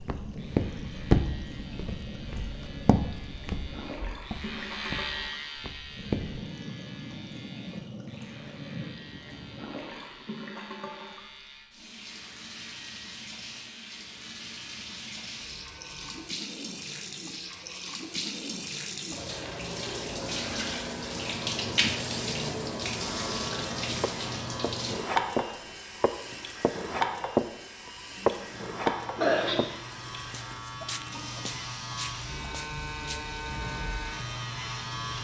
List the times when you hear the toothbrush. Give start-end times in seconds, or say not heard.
not heard.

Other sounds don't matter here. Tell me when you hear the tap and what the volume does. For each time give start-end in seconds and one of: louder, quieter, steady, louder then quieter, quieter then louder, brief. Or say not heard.
0.0-35.1 louder then quieter.